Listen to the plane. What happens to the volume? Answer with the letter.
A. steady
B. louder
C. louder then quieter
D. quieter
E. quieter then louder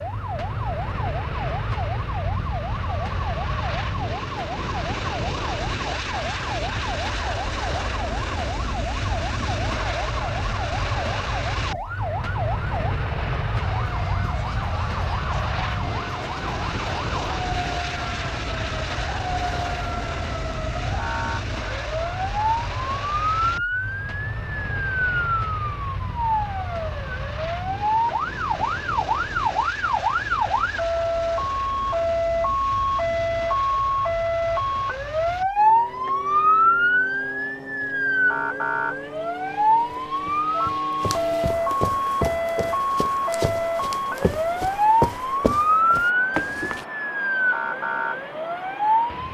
D.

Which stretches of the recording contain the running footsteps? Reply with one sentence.
The running footsteps can be heard from 39.8 to 46.9 s.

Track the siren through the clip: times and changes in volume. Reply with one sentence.
The siren can be heard from 0.0 to 49.2 s, getting louder.